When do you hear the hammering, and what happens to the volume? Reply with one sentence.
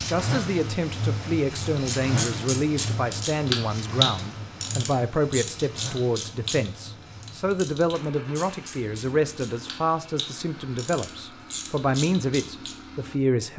The hammering can't be heard in this clip.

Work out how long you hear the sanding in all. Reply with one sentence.
The sanding can't be heard in this clip.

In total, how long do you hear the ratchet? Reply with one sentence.
The ratchet can be heard for 11 seconds in total.